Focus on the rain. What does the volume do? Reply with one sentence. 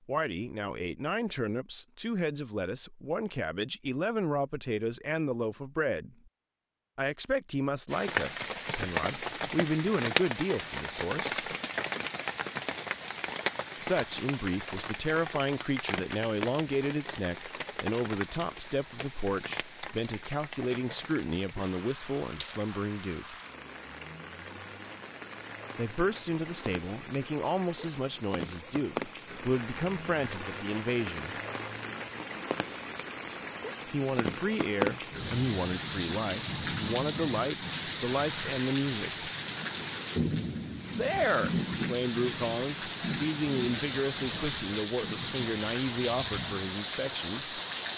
The loudness of the rain goes down, then up.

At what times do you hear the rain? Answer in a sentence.
You can hear the rain from 7.9 to 47.9 s.